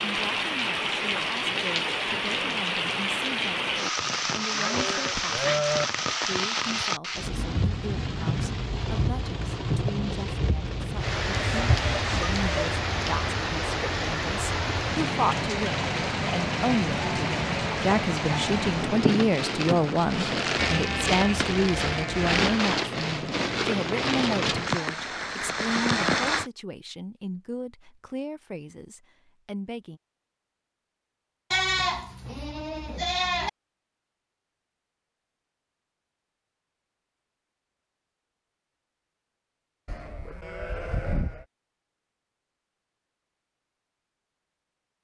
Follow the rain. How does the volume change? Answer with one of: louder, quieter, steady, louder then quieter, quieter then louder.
steady.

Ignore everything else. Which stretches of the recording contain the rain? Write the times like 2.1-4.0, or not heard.
0.0-26.5.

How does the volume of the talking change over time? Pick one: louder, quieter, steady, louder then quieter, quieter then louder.
louder then quieter.